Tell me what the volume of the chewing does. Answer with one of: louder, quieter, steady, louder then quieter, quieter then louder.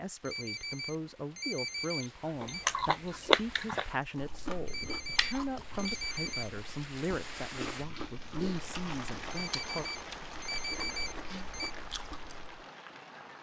quieter.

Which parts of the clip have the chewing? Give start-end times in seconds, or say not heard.
2.2-12.7.